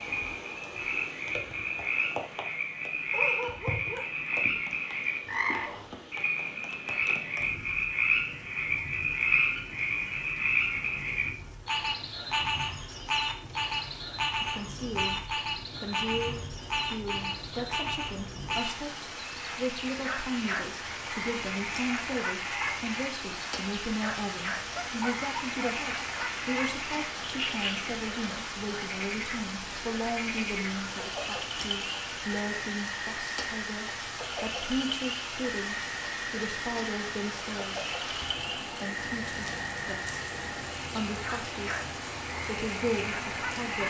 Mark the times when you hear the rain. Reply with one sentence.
The rain can be heard from 0.0 to 43.8 s.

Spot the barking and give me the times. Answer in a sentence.
The barking can be heard from 3.1 to 4.6 s and from 24.8 to 25.8 s.